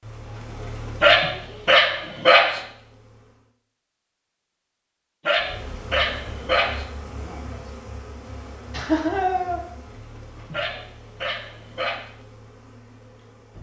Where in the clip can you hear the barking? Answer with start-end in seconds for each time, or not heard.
1.0-2.6, 5.2-6.8, 10.5-12.1.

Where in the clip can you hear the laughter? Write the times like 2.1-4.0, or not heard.
8.7-9.6.